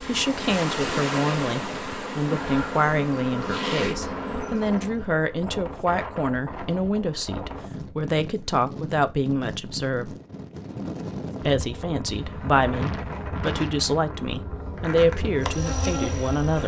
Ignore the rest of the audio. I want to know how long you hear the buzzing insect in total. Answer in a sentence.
The buzzing insect can be heard for 10 seconds in total.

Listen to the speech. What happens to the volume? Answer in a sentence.
The volume of the speech stays about the same.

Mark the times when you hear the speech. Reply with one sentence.
You can hear the speech from 0.1 to 10.1 s and from 11.4 to 16.6 s.